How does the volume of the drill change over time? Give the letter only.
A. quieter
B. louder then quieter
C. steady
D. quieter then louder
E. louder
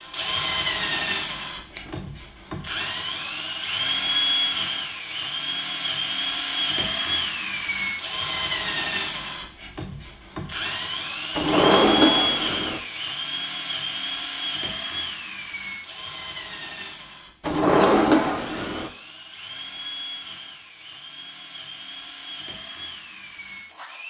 A.